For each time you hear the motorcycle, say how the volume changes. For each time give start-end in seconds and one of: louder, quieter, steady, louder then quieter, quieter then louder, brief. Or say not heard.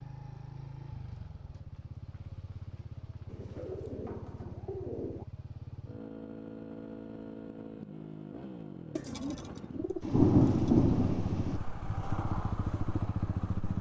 0.0-13.7 louder.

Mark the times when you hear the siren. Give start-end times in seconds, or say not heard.
not heard.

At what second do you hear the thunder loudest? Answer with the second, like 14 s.
10 s.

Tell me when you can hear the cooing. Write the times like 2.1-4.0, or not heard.
3.2-5.2, 8.9-10.8.